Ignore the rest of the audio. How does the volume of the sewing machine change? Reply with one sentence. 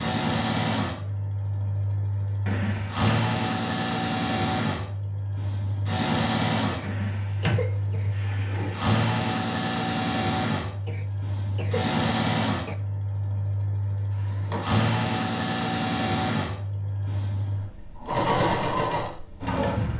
The loudness of the sewing machine stays about the same.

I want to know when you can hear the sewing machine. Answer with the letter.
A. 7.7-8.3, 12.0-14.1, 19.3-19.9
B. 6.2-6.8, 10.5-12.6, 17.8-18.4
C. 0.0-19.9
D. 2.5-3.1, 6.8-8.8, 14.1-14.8
C.